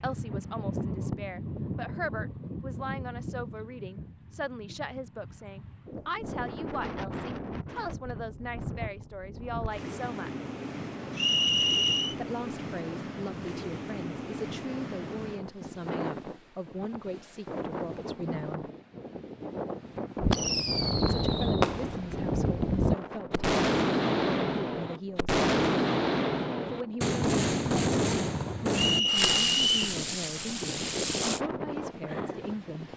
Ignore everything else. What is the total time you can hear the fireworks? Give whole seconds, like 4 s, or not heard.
11 s.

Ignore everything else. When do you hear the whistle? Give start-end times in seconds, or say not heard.
11.2-12.2, 28.7-29.9.